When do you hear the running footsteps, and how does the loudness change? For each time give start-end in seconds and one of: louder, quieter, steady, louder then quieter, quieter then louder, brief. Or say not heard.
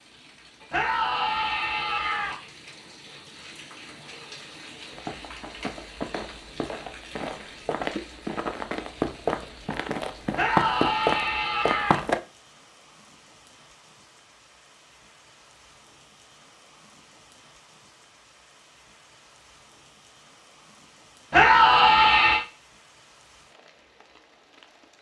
4.9-12.2 louder.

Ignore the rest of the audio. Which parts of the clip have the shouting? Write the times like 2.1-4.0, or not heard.
0.7-2.4, 10.3-12.0, 21.3-22.4.